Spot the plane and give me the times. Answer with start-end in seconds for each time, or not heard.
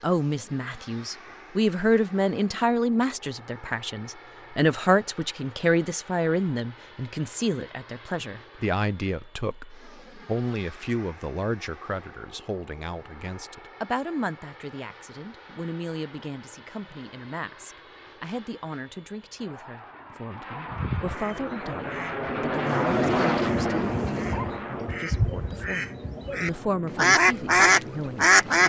0.0-28.6.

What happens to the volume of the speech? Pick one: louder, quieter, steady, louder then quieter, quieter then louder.
quieter.